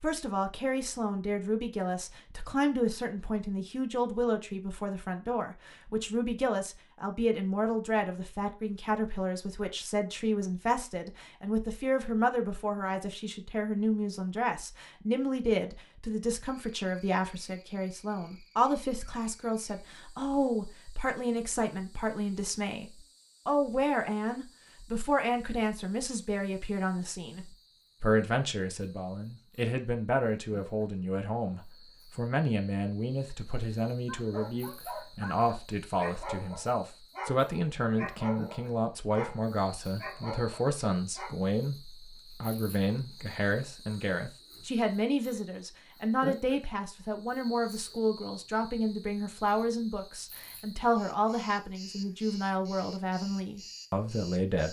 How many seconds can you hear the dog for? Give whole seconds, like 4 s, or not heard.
7 s.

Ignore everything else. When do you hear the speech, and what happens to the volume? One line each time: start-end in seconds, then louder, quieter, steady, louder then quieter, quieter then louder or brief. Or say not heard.
0.0-54.6 steady.